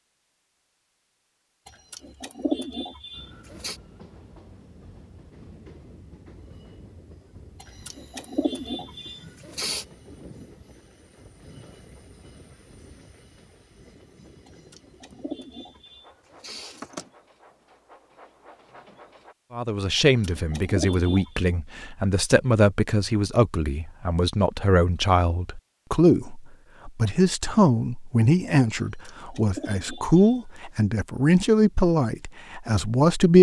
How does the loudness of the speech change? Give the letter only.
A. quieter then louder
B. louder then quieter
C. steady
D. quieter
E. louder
C.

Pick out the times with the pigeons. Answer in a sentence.
You can hear the pigeons from 1.6 to 3.8 s, from 7.6 to 9.8 s, from 14.4 to 17.1 s, from 19.9 to 21.4 s and from 28.8 to 30.8 s.